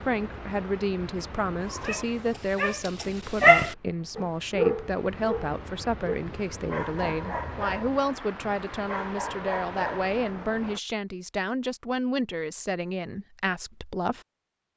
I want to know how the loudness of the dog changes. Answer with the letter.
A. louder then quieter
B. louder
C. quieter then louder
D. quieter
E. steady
D.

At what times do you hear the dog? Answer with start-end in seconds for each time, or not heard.
1.6-10.3.